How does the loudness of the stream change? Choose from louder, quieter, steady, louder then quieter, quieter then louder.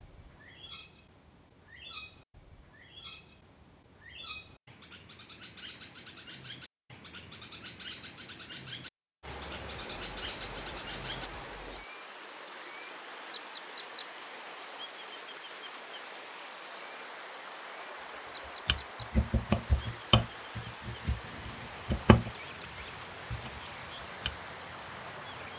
steady.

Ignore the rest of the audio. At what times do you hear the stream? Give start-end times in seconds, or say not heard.
9.2-25.5.